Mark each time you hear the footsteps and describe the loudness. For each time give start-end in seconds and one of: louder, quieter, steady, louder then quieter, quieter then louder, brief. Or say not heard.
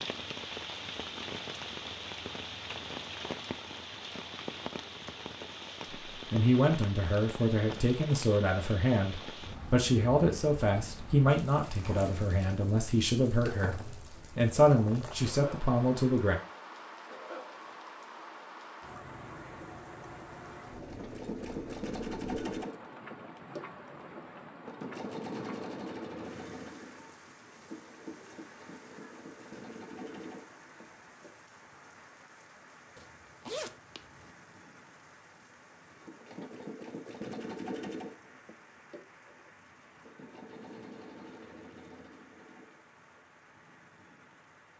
not heard.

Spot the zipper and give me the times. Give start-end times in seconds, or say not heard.
33.0-34.3.